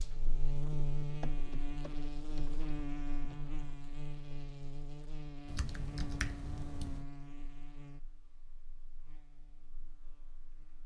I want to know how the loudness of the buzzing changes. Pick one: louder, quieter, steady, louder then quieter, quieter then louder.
quieter.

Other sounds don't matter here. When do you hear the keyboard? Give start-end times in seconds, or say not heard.
1.2-3.8, 5.5-7.0.